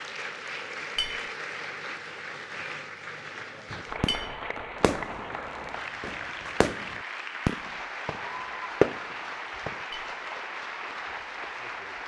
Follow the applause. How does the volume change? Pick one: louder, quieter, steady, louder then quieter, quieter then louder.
steady.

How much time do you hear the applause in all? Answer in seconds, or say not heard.
12 s.